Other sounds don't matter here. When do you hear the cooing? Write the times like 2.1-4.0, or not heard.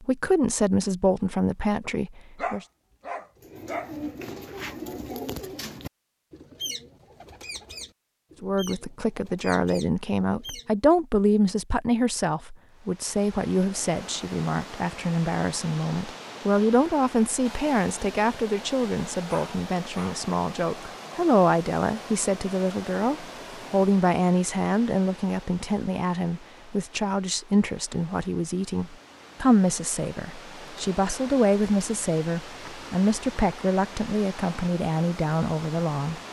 3.4-10.8.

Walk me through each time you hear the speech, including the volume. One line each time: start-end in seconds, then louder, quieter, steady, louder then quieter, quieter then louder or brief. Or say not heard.
0.0-2.6 brief
8.4-36.2 steady.